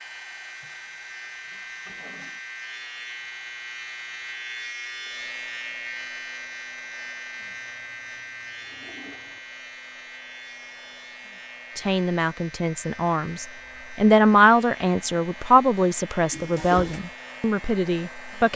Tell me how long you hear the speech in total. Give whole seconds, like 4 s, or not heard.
7 s.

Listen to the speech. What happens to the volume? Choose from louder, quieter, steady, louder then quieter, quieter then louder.
louder then quieter.